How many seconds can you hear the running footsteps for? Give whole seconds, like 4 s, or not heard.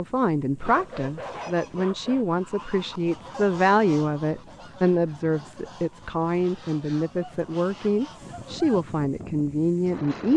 not heard.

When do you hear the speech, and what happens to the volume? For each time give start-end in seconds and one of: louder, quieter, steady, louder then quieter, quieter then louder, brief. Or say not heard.
0.0-10.3 steady.